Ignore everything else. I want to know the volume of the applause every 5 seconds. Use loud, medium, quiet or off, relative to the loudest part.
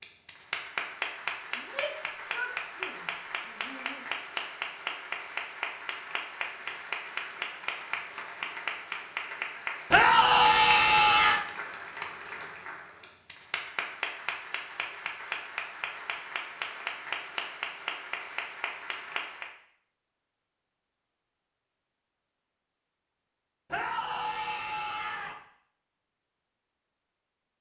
loud, loud, loud, loud, off, off.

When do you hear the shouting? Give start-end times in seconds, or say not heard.
1.6-4.0, 9.9-11.4, 23.7-25.4.